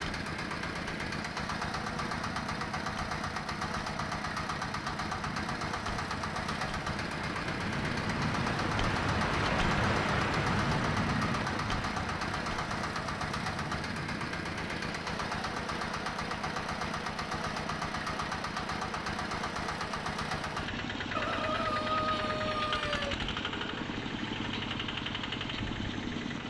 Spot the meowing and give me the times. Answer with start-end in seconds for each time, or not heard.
not heard.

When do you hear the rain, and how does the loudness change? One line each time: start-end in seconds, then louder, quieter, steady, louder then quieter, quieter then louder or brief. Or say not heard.
0.0-26.4 louder then quieter.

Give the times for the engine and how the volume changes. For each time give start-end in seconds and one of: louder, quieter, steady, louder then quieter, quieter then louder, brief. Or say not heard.
0.0-26.4 steady.